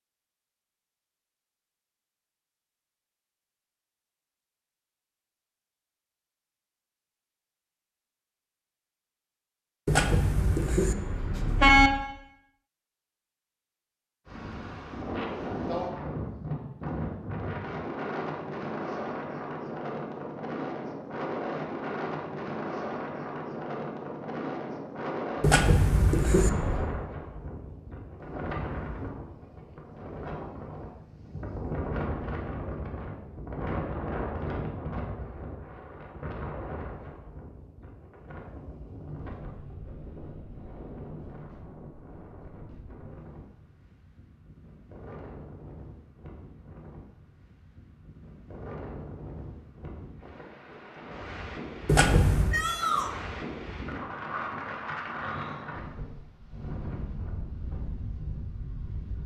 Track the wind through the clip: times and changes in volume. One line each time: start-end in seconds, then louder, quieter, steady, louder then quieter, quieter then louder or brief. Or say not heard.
14.2-59.2 quieter then louder.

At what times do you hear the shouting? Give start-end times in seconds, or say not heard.
52.5-53.1.